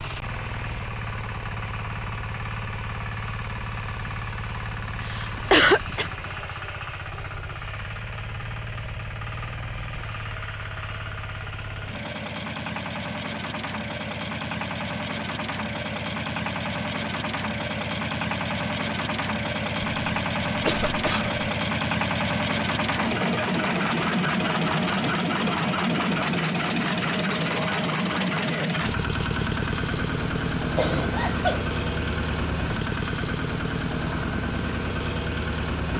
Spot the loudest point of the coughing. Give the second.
6 s.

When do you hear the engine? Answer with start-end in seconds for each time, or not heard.
0.0-35.9.